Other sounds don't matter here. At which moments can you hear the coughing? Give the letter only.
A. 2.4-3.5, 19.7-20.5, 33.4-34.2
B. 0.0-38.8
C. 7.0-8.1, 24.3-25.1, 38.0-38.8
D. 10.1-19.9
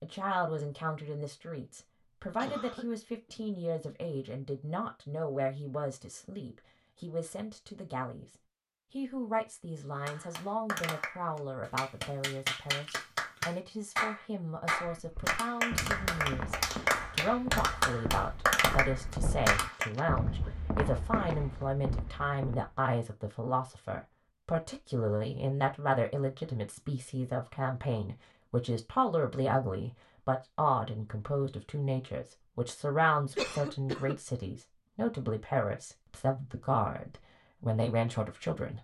A.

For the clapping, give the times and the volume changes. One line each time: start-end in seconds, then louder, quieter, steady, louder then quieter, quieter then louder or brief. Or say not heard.
10.1-19.9 louder.